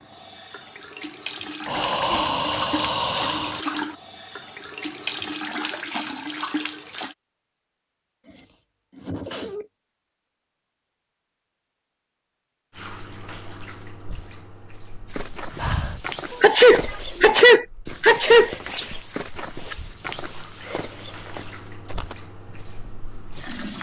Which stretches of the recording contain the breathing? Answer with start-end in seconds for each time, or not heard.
1.6-3.6, 15.6-16.1.